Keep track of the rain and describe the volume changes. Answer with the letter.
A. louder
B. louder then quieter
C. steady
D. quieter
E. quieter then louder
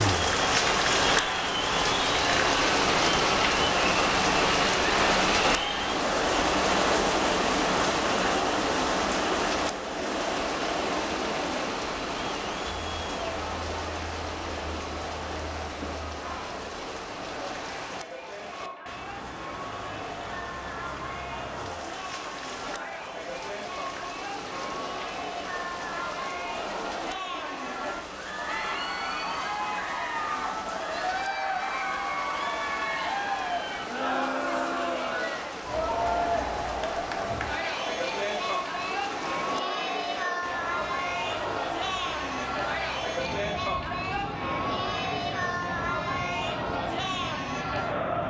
D.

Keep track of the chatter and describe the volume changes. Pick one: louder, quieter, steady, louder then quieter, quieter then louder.
quieter then louder.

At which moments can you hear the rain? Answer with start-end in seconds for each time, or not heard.
0.0-48.2.